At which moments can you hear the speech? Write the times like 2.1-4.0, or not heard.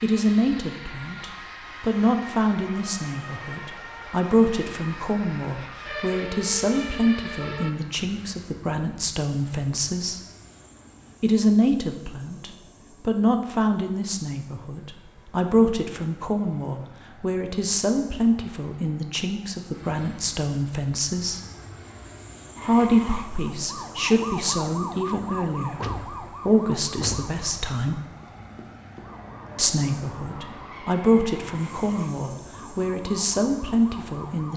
0.0-10.2, 11.2-21.4, 22.6-28.0, 29.6-34.5.